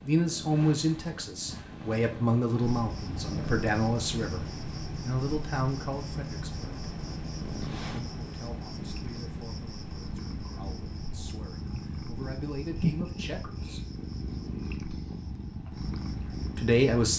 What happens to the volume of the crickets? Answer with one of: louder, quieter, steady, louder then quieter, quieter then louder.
quieter.